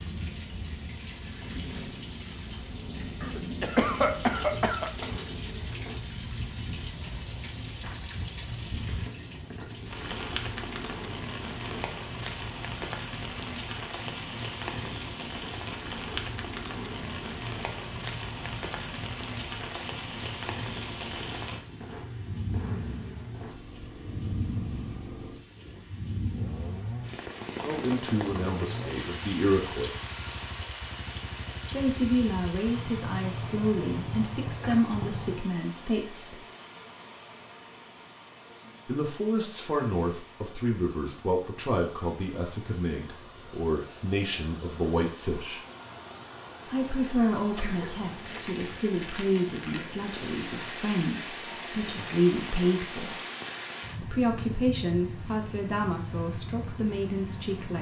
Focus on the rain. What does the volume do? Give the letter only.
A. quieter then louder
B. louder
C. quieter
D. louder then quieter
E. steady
A.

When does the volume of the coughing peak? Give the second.
4 s.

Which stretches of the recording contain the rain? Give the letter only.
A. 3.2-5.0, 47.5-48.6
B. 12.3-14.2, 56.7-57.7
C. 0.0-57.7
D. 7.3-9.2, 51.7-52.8
C.